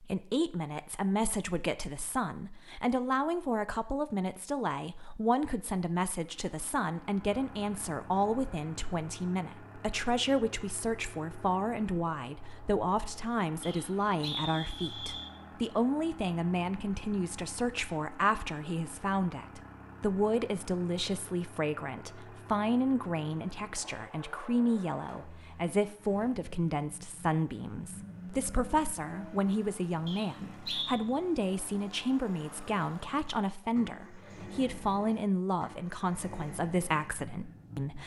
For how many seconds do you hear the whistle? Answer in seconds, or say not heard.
3 s.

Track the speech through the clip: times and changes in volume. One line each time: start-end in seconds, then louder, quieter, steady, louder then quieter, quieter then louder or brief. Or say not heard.
0.0-38.0 steady.